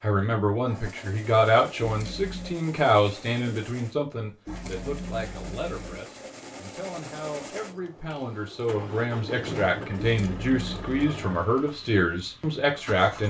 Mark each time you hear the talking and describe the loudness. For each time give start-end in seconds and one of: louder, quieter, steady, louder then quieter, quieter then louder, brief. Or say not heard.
0.0-13.2 quieter then louder.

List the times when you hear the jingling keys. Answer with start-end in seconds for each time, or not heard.
1.8-2.6, 4.5-6.0, 9.9-11.0.